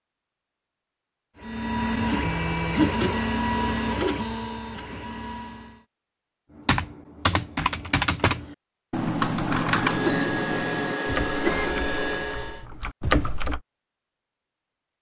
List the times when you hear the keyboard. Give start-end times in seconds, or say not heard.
6.7-13.6.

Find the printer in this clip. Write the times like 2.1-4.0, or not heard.
1.4-5.8, 9.5-12.7.